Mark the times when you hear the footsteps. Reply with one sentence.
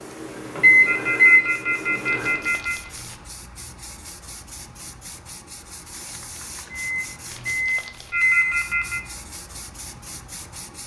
You can't hear the footsteps here.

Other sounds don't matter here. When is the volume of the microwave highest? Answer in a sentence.
The volume of the microwave peaks at 1 second.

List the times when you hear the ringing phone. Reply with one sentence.
You can hear the ringing phone from 0.8 to 2.9 s and from 8.1 to 9.1 s.